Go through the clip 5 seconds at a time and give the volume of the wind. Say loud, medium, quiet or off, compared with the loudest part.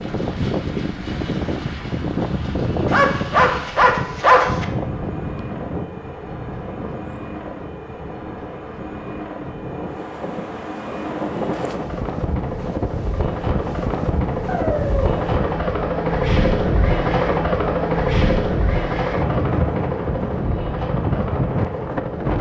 loud, medium, loud, loud, loud.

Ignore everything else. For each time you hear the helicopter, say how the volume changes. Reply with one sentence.
The helicopter can be heard from 0.0 to 22.3 s, getting louder.